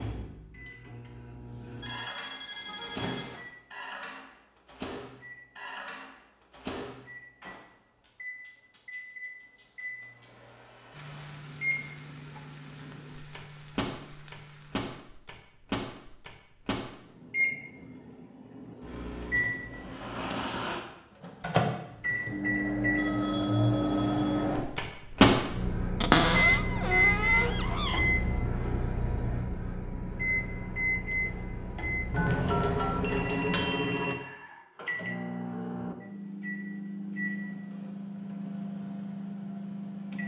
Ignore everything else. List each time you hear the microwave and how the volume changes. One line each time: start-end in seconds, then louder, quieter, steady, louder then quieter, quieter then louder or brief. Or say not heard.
0.0-40.2 louder then quieter.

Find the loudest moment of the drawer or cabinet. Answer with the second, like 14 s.
26 s.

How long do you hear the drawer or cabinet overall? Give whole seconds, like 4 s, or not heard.
2 s.